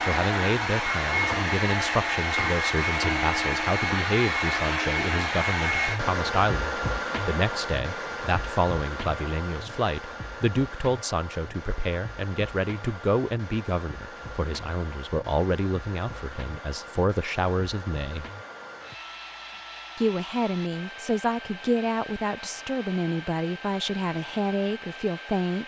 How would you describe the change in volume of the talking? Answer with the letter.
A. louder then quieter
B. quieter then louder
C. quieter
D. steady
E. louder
D.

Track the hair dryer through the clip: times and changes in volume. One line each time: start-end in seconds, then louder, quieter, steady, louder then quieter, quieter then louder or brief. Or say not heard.
0.0-25.6 quieter.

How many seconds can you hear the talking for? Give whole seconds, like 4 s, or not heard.
24 s.